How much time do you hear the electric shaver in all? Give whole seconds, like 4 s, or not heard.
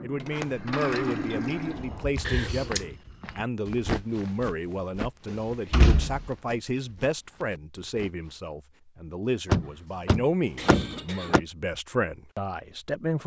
not heard.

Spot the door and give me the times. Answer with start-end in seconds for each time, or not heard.
0.2-2.0, 5.2-6.3, 9.5-11.4.